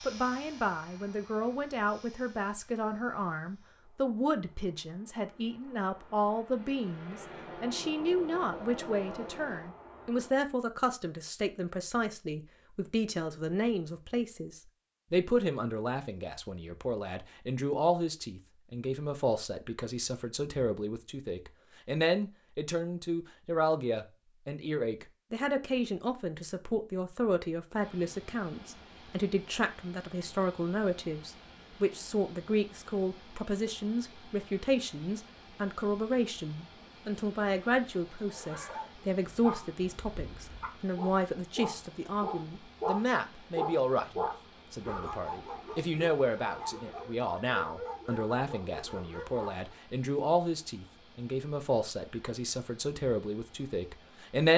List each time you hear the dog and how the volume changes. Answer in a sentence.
The dog can be heard from 38.2 to 49.8 s, getting louder then quieter.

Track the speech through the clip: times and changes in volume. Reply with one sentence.
You can hear the speech from 0.0 to 54.5 s, at a steady volume.